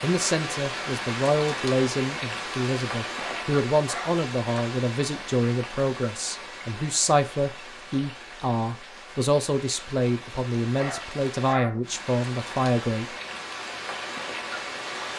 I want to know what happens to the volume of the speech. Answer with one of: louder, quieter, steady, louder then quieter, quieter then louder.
steady.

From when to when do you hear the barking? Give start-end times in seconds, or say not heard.
3.1-4.2, 10.8-11.9.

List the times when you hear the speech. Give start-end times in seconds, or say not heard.
0.0-13.1.